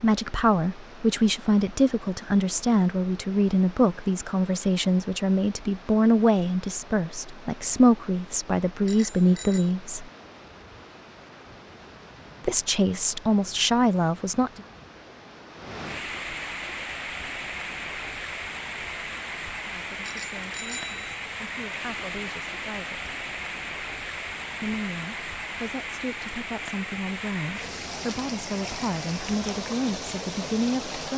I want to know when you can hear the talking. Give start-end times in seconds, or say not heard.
0.0-10.1, 12.4-14.6, 19.7-23.1, 24.6-31.1.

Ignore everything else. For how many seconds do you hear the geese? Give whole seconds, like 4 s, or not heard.
not heard.